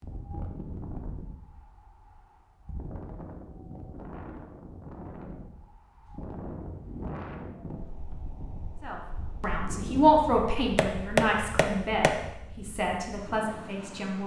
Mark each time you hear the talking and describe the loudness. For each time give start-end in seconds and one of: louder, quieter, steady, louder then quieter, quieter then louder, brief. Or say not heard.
8.8-14.2 quieter.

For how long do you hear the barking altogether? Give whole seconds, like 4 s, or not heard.
not heard.